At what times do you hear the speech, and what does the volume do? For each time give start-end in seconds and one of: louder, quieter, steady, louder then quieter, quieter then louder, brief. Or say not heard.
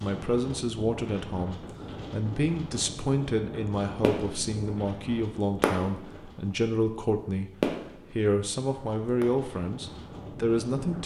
0.0-7.5 steady
8.1-11.0 brief.